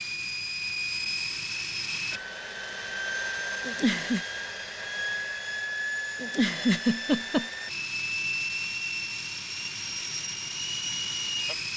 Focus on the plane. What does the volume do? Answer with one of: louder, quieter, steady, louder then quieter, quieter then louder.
steady.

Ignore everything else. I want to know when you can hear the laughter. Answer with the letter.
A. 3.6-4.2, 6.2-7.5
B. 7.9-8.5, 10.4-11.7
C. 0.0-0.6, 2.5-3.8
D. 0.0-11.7
A.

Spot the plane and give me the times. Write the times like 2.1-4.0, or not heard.
0.0-11.7.